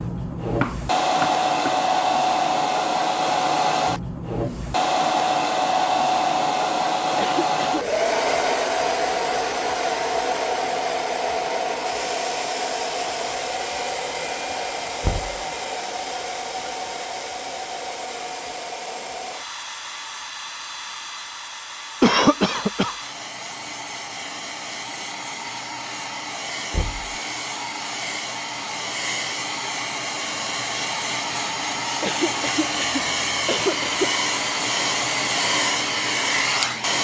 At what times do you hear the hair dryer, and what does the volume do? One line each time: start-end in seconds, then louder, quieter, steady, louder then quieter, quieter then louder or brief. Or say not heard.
0.0-36.9 quieter then louder.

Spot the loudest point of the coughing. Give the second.
22 s.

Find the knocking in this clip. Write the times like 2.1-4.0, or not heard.
0.6-1.8, 15.0-15.4, 26.7-27.1.